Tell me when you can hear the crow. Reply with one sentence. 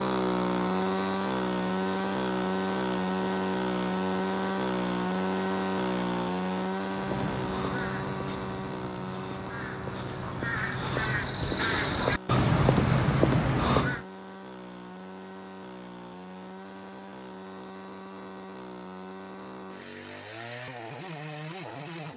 The crow can be heard from 7.0 to 14.1 s.